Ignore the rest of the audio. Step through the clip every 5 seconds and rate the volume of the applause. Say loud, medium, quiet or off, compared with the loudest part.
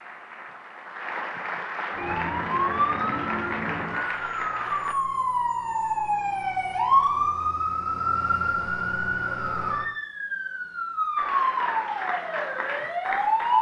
loud, off, loud.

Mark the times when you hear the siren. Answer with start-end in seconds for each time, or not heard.
1.9-13.5.